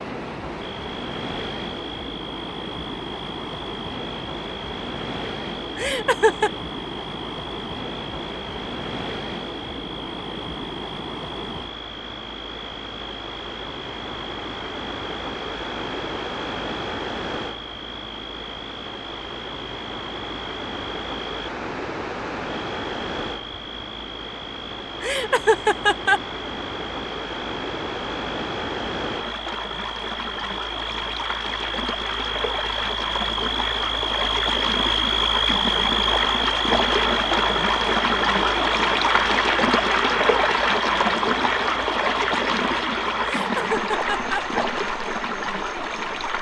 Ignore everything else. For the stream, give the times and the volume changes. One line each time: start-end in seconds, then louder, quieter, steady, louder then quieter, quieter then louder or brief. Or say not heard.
0.0-46.3 louder.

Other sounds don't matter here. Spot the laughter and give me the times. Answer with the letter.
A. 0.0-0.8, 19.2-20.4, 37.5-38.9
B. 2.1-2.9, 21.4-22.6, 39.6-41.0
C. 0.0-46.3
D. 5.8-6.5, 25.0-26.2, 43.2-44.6
D.